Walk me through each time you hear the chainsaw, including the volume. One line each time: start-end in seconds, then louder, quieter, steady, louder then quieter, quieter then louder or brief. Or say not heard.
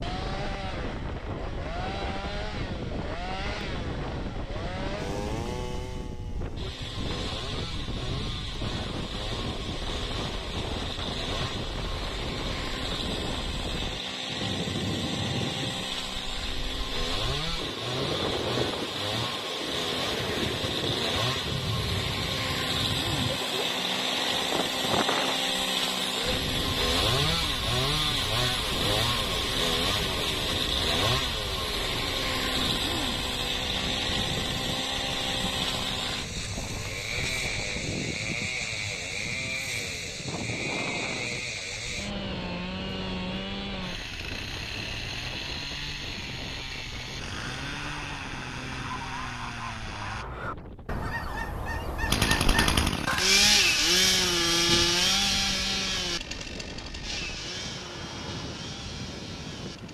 0.0-50.2 louder then quieter
52.1-59.8 quieter.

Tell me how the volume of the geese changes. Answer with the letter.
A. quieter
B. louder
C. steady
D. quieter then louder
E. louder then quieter
B.